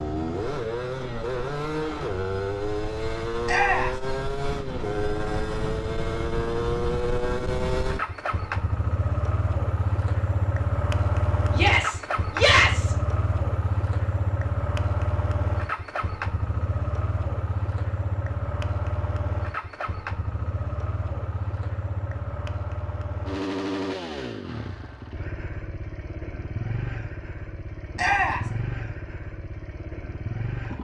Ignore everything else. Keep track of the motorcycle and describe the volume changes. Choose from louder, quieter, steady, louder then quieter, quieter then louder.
quieter.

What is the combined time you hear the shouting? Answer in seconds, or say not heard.
2 s.